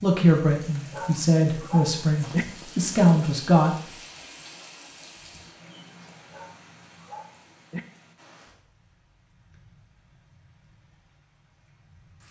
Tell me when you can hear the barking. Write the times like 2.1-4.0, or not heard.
0.9-2.5, 6.3-7.8.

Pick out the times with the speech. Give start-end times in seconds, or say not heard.
0.0-3.8.